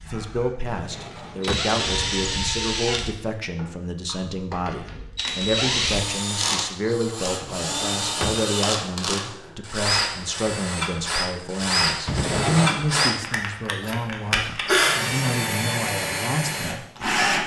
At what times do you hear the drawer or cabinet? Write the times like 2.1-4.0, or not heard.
0.7-1.8, 7.4-8.4, 12.1-12.7.